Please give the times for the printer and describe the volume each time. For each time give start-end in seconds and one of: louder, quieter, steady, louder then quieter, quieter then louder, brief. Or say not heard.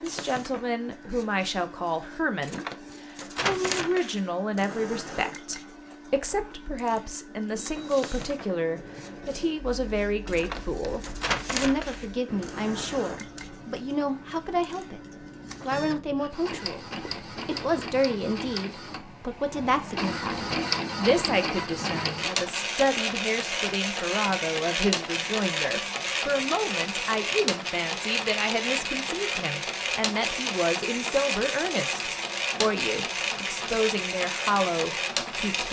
0.0-35.6 louder.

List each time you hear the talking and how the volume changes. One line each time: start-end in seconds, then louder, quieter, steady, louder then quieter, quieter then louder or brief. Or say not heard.
0.0-2.6 brief
3.4-15.0 steady
15.7-35.6 steady.